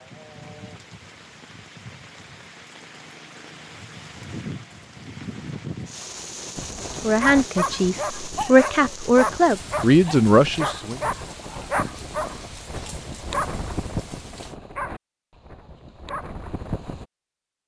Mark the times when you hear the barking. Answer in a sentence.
You can hear the barking from 6.5 to 17.1 s.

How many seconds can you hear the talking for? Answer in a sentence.
You can hear the talking for 4 seconds altogether.